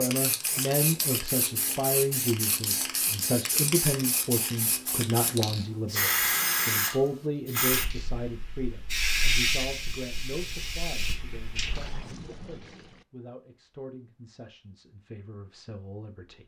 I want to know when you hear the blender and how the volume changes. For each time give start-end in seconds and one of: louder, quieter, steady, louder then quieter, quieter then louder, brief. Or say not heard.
not heard.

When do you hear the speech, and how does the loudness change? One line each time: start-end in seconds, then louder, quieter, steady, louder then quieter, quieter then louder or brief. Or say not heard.
0.0-16.4 quieter.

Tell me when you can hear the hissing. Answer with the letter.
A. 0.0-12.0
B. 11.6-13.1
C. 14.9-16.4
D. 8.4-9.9
A.